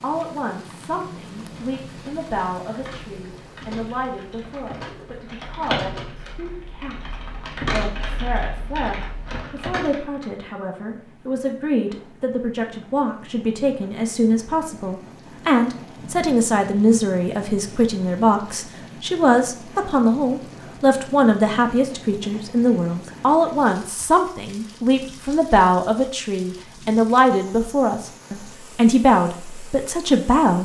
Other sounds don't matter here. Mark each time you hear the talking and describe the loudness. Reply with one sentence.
You can hear the talking from 0.0 to 30.5 s, getting louder.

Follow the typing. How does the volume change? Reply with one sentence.
The loudness of the typing goes up.